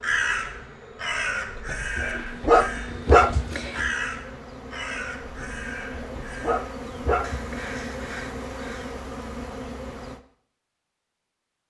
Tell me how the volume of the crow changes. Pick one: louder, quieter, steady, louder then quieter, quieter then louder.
quieter.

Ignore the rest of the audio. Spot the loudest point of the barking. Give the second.
3 s.